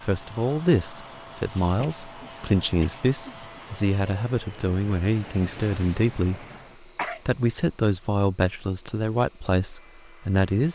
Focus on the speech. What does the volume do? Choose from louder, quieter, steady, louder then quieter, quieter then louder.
steady.